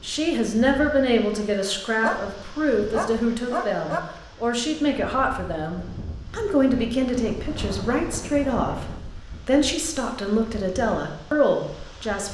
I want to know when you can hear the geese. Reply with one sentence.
You can't hear the geese here.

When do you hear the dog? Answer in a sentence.
The dog can be heard from 2.0 to 4.0 s.